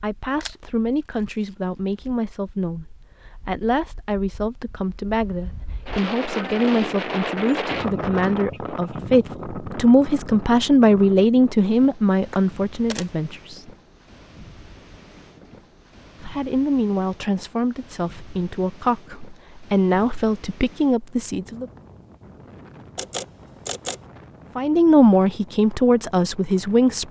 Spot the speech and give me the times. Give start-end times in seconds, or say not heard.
0.0-13.7, 16.2-21.6, 24.6-27.0.